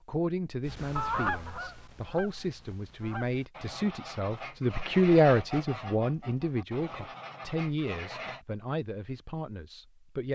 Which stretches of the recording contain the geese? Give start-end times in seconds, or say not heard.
0.7-8.4.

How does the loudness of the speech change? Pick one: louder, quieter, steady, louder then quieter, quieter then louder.
louder then quieter.